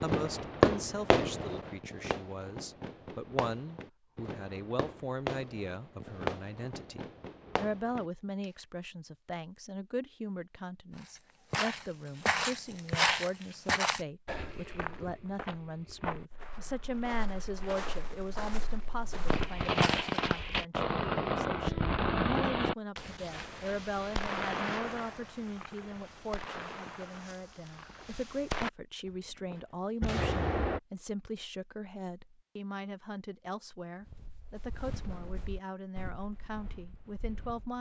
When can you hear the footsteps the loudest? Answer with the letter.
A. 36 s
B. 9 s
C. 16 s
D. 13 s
D.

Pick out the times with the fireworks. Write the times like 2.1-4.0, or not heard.
0.0-8.4, 19.2-30.8.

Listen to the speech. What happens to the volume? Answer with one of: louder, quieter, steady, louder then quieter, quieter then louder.
steady.